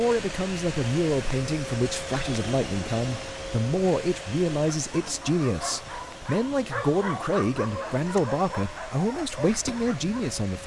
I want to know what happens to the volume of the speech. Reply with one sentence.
The volume of the speech stays about the same.